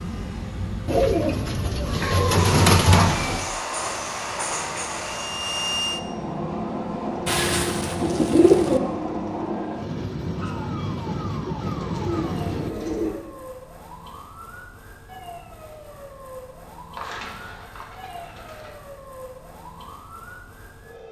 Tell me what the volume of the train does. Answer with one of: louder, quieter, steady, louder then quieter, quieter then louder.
steady.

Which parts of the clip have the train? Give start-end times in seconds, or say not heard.
2.4-12.7.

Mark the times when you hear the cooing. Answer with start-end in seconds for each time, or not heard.
0.8-3.5, 7.2-8.8, 11.6-13.2, 16.9-18.8.